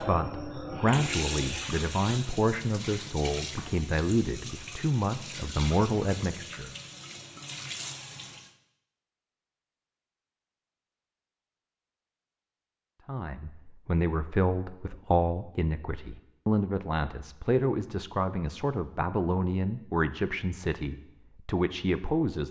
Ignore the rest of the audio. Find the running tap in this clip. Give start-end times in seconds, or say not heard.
0.0-8.6.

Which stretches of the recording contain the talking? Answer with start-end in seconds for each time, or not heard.
0.0-6.7, 13.1-22.4.